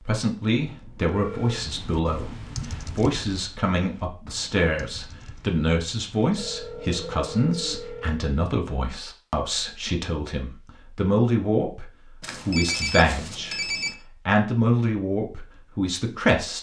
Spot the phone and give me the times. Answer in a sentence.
You can hear the phone from 0.6 to 1.6 s, from 6.3 to 8.2 s and from 12.2 to 13.9 s.